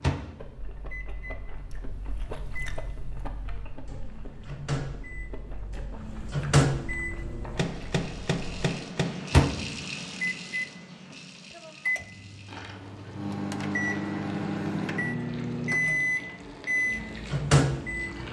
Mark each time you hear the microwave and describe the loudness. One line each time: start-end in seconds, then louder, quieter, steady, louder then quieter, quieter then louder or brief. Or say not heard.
0.0-18.2 louder.